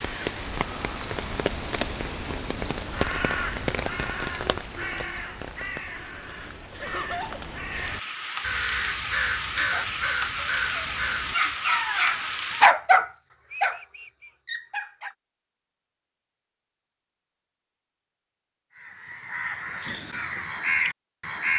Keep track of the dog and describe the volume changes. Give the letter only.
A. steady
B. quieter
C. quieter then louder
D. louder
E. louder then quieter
E.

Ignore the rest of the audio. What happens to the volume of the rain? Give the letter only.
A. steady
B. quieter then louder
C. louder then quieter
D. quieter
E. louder
B.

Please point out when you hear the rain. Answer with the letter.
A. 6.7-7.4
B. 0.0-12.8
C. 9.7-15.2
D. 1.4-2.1
B.